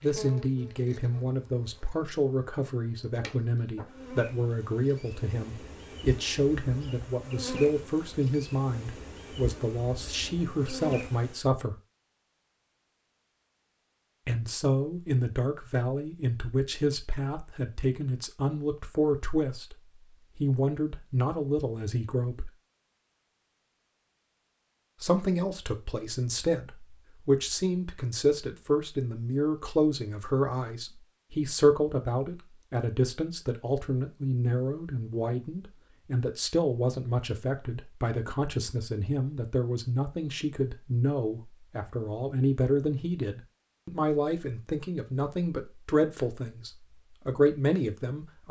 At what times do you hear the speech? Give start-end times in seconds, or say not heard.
0.0-11.8, 14.2-19.8, 20.4-22.5, 25.0-48.4.